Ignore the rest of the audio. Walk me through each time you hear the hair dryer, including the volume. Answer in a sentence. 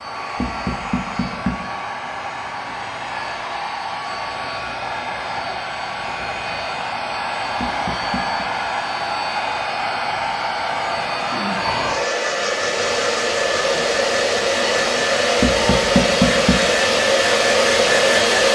You can hear the hair dryer from 0.0 to 18.5 s, getting louder.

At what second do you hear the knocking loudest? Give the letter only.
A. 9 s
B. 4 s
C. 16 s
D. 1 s
C.